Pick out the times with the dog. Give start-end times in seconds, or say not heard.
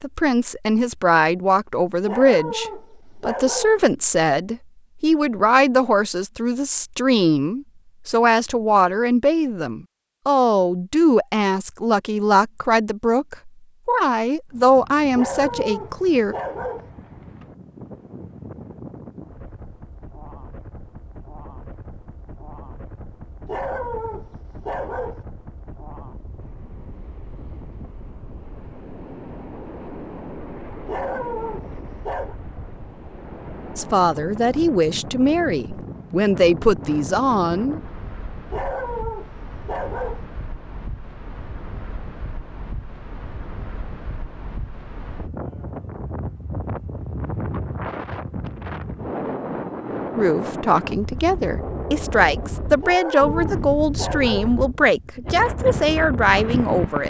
2.0-3.8, 15.2-16.9, 23.4-25.2, 30.9-32.4, 38.5-40.2, 52.8-54.5.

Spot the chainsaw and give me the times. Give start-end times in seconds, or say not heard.
not heard.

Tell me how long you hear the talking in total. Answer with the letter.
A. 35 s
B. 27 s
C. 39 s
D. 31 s
B.